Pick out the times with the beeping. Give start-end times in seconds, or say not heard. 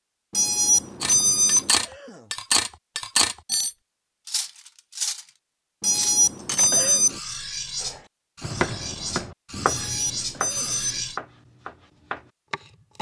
0.3-1.7, 5.8-7.2, 9.7-11.0.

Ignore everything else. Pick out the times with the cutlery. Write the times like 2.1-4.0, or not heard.
1.0-5.2, 5.8-11.2.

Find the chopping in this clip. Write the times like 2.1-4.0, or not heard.
7.8-12.9.